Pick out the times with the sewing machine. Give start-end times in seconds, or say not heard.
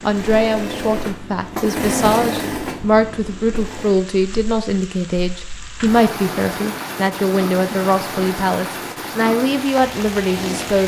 0.0-4.0.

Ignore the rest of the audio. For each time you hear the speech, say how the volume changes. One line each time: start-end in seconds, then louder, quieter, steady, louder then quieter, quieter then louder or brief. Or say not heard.
0.0-10.8 steady.